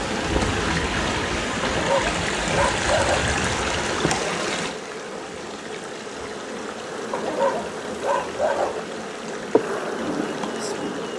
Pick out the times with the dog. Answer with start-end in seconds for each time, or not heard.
1.6-3.3, 7.1-8.8.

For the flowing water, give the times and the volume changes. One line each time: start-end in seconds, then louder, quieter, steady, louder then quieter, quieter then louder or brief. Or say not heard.
0.0-11.1 quieter.